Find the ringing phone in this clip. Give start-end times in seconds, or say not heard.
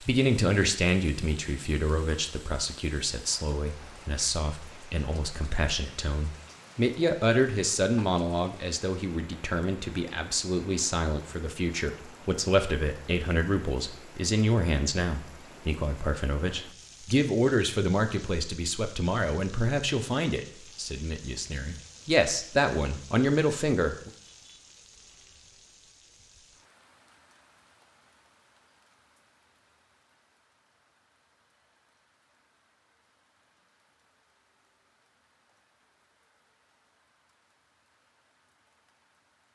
not heard.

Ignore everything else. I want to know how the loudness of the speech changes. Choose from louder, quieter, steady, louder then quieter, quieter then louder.
steady.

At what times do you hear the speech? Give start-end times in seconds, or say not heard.
0.0-24.1.